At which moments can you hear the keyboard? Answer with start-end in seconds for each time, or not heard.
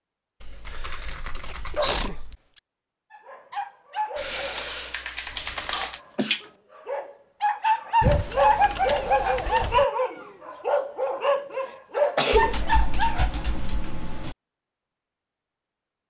0.4-2.4, 4.2-6.0, 8.0-9.8, 12.3-14.3.